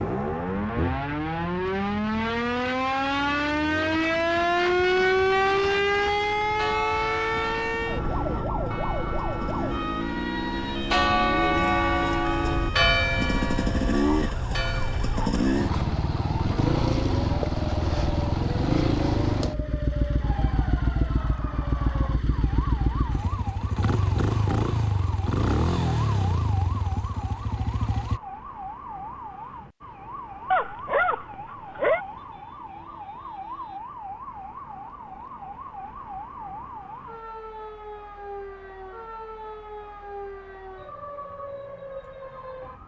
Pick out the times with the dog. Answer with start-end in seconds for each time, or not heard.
30.5-32.0.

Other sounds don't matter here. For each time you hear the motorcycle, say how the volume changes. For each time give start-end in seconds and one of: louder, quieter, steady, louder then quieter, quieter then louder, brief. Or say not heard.
0.0-28.2 louder.